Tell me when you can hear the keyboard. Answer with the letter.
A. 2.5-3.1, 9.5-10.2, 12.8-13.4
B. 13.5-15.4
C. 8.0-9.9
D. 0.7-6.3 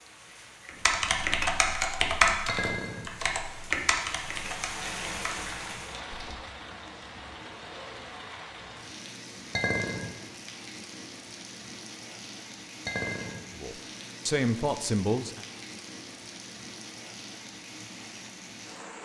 D.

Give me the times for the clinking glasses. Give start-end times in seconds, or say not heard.
2.5-3.1, 9.5-10.2, 12.8-13.4.